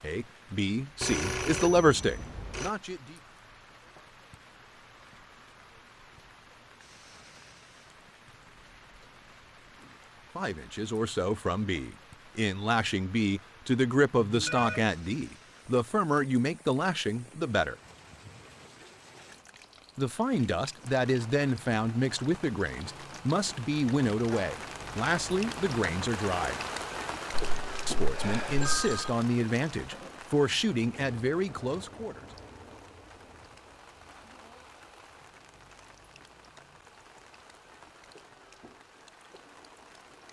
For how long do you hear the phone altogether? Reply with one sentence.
The phone can be heard for 4 seconds in total.